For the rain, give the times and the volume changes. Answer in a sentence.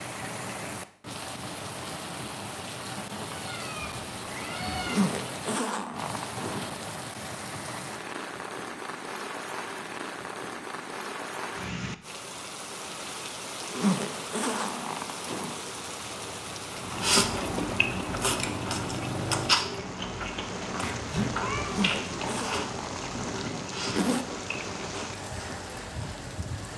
The rain can be heard from 0.0 to 26.7 s, at a steady volume.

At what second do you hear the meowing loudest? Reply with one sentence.
The loudest moment of the meowing is at 21 seconds.